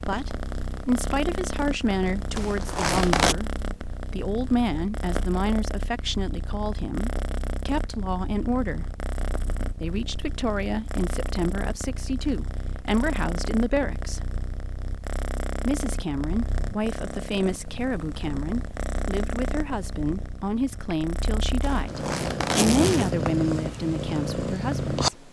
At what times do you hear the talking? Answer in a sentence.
The talking can be heard from 0.1 to 8.9 s, from 9.8 to 14.2 s and from 15.7 to 25.2 s.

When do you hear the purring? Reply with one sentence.
The purring can be heard from 0.0 to 25.2 s.